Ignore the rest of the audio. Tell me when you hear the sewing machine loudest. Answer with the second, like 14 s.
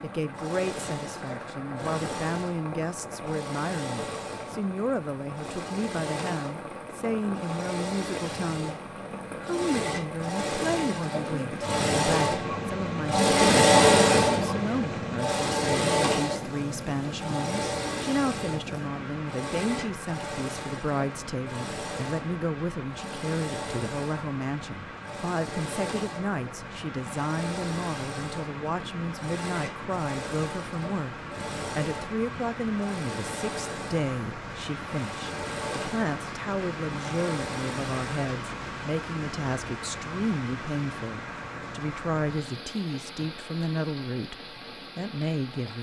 14 s.